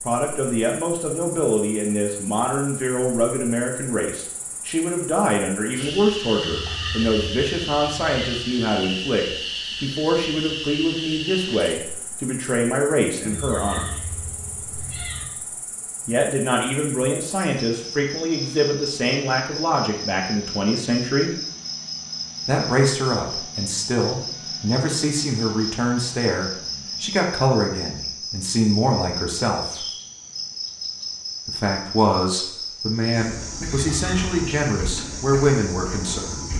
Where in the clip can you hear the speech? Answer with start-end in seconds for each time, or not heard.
0.0-13.8, 16.1-21.3, 22.4-29.9, 31.4-36.5.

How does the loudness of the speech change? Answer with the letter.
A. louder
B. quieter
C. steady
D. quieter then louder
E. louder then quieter
C.